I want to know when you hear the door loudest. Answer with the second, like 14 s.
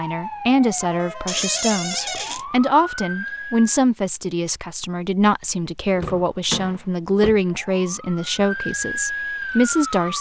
2 s.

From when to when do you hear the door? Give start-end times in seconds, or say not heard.
1.2-2.4, 5.9-7.4.